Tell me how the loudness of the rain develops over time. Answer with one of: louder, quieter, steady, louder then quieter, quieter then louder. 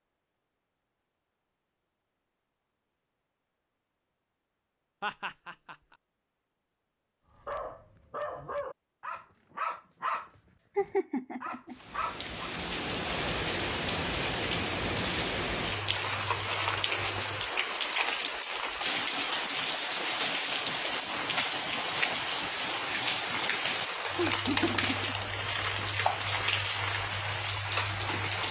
steady.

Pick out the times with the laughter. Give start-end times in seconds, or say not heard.
5.0-5.8, 10.8-11.8, 24.1-25.1.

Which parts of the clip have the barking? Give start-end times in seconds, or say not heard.
7.5-12.6.